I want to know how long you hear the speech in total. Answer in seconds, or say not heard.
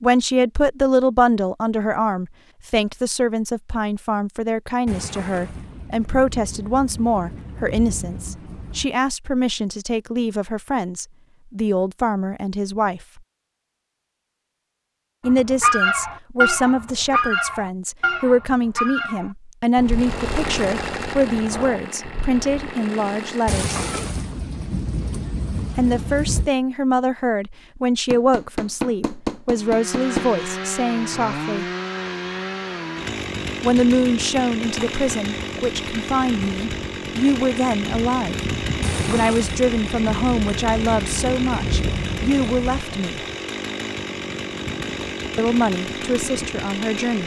39 s.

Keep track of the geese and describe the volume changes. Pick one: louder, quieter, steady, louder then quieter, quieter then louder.
quieter.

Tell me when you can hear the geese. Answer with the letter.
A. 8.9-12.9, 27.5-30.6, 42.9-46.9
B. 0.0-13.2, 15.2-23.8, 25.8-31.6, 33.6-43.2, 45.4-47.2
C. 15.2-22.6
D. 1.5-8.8
C.